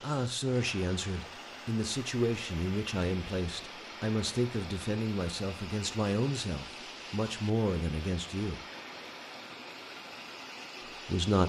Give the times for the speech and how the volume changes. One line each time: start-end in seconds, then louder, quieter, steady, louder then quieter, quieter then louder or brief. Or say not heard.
0.0-8.6 steady
10.9-11.4 brief.